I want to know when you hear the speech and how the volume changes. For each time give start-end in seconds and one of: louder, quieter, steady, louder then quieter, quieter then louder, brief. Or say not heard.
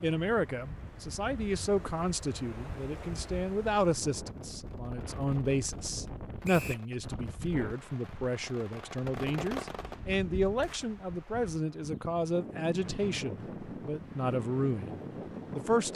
0.0-15.9 steady.